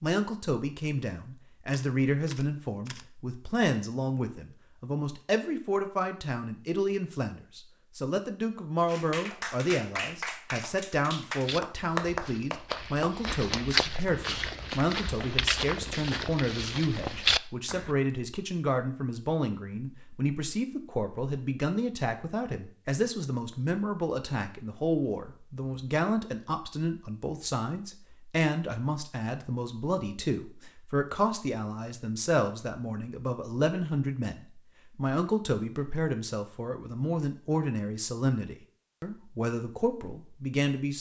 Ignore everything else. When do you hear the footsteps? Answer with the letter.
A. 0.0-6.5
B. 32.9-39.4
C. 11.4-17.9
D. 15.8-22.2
C.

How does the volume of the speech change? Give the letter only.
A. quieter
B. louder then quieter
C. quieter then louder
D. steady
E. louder
D.